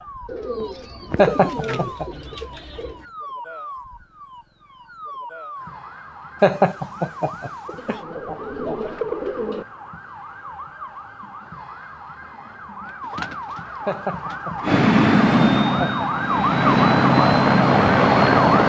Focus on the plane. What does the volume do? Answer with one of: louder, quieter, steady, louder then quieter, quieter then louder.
quieter then louder.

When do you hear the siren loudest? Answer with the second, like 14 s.
16 s.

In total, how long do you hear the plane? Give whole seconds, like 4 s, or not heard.
4 s.